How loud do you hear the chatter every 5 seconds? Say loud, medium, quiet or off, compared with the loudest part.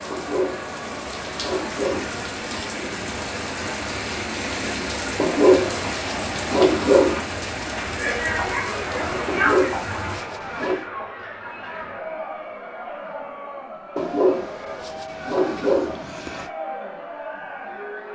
medium, loud, medium, medium.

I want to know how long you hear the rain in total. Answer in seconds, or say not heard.
10 s.